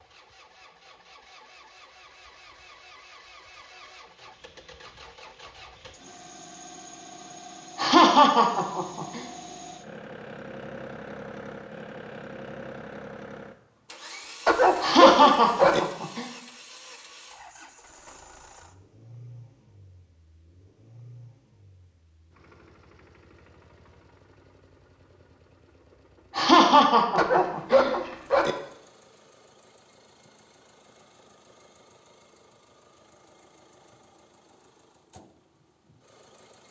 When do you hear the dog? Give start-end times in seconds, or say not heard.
14.4-15.8, 27.1-28.6.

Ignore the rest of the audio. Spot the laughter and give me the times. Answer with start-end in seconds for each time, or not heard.
7.8-9.2, 14.8-16.2, 26.4-27.9.